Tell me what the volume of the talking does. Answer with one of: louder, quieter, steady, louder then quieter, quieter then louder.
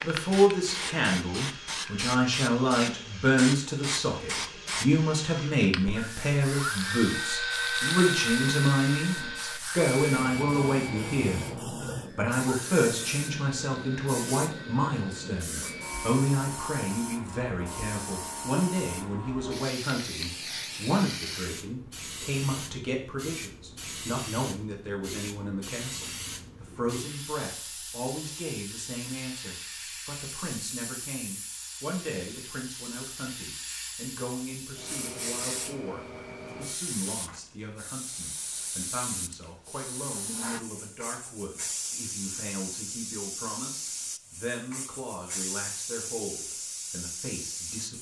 quieter.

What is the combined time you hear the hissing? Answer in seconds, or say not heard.
48 s.